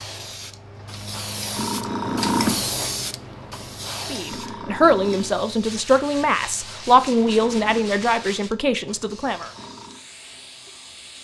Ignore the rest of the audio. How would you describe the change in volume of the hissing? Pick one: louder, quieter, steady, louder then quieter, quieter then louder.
quieter.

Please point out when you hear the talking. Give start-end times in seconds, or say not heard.
4.1-9.5.